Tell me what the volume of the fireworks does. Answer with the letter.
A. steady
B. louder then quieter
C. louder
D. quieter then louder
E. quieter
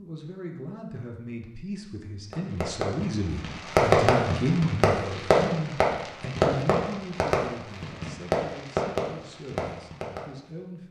E.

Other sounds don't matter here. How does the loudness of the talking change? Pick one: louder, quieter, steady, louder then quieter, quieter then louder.
louder then quieter.